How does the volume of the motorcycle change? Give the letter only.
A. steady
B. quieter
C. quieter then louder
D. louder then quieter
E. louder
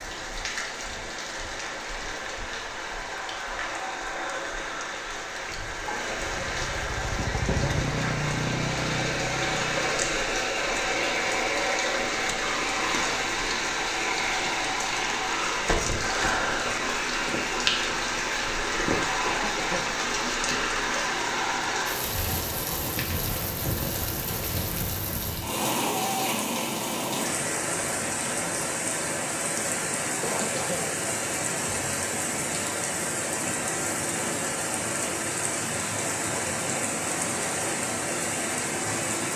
D.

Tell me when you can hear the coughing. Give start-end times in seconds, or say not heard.
5.7-6.3, 19.1-19.9, 30.1-30.9.